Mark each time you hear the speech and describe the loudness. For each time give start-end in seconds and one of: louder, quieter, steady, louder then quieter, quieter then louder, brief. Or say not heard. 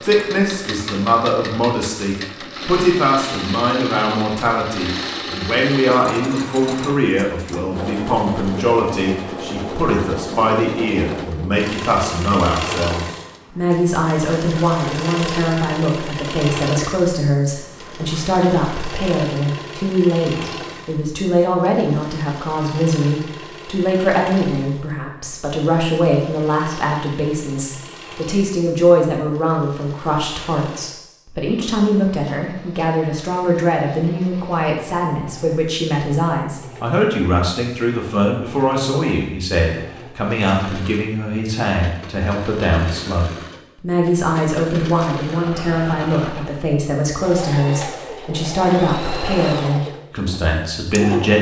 0.0-51.3 steady.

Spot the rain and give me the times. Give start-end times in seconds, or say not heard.
not heard.